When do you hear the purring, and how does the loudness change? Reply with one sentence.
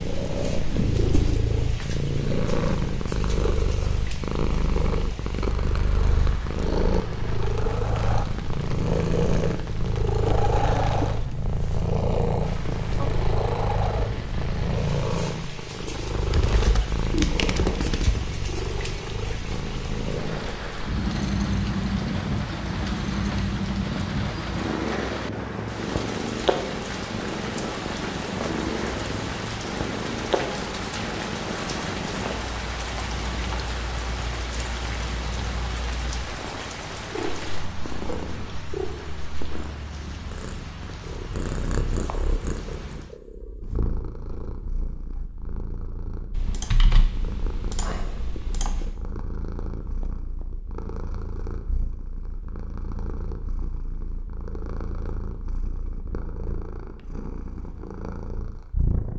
The purring can be heard from 0.0 to 59.1 s, getting quieter.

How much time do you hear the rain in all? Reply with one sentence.
The rain can be heard for 43 seconds in total.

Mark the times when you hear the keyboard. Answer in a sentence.
The keyboard can be heard from 16.3 to 18.2 s and from 46.4 to 49.0 s.